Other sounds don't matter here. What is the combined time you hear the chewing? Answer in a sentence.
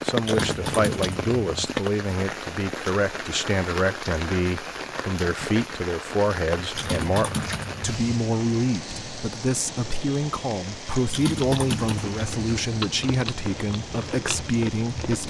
You can hear the chewing for 4 seconds altogether.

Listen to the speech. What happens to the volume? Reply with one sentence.
The volume of the speech stays about the same.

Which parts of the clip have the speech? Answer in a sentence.
The speech can be heard from 0.0 to 15.2 s.